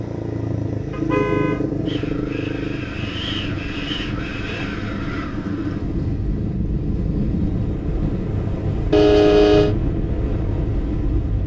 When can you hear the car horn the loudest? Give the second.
9 s.